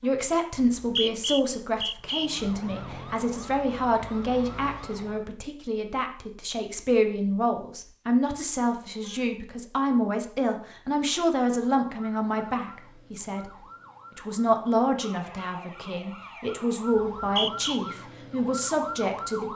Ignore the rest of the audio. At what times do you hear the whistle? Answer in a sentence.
The whistle can be heard from 0.6 to 2.3 s and from 16.9 to 17.8 s.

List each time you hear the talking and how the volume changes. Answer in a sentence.
You can hear the talking from 0.0 to 13.5 s, at a steady volume; and from 14.2 to 19.5 s, getting quieter then louder.